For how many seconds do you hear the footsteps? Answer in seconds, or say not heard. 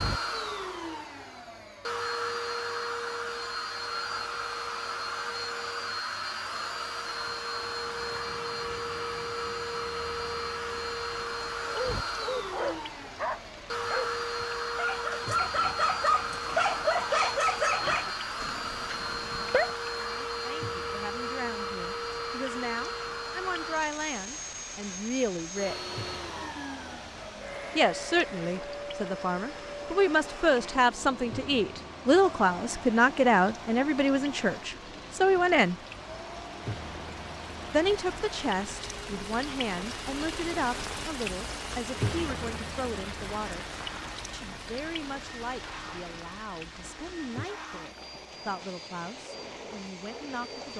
not heard.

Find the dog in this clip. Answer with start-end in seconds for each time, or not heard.
11.6-19.7.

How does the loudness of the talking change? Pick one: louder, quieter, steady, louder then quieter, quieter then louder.
louder then quieter.